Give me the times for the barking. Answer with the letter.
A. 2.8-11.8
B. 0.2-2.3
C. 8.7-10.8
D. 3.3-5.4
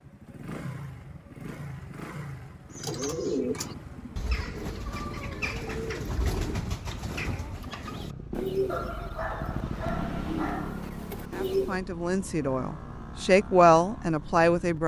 C.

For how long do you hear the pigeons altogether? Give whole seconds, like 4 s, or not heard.
9 s.